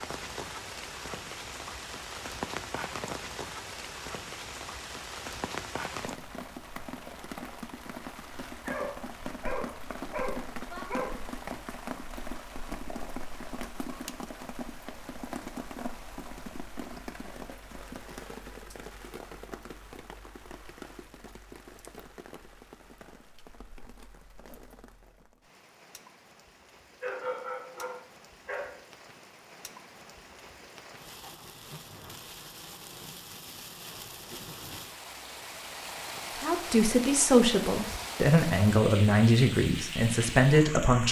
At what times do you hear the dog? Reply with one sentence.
The dog can be heard from 8.7 to 11.2 s and from 27.0 to 28.8 s.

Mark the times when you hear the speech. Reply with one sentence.
You can hear the speech from 36.4 to 41.0 s.